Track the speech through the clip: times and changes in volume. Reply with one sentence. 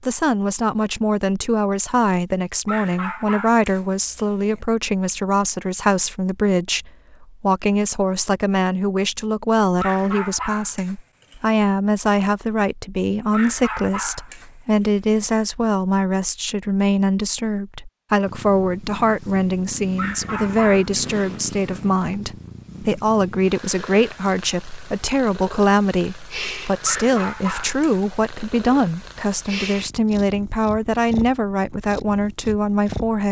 You can hear the speech from 0.0 to 33.2 s, at a steady volume.